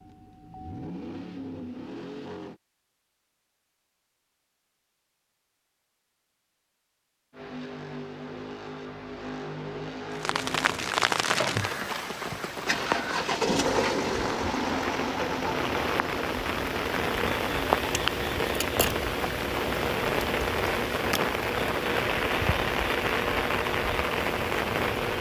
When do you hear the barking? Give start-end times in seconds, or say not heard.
not heard.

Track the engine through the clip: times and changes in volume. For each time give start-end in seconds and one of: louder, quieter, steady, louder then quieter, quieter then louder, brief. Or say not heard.
0.0-2.6 brief
7.3-25.1 louder then quieter.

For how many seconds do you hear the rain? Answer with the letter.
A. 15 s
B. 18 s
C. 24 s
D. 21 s
A.